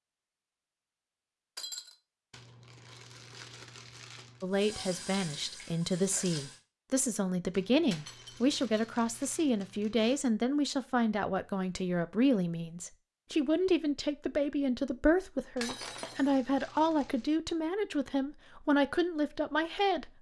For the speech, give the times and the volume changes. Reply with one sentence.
You can hear the speech from 4.4 to 20.1 s, at a steady volume.